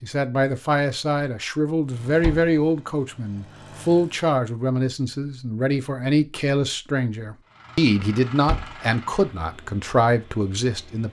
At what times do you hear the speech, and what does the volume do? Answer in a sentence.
The speech can be heard from 0.0 to 11.0 s, at a steady volume.